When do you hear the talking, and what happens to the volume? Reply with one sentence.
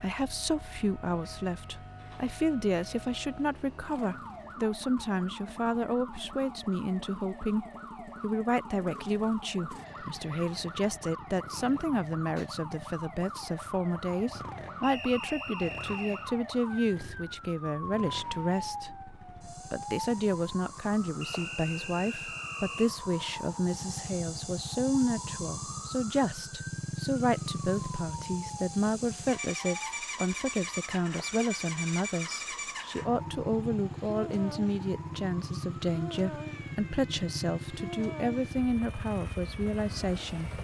You can hear the talking from 0.0 to 40.6 s, at a steady volume.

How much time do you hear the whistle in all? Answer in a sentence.
You can hear the whistle for 3 seconds altogether.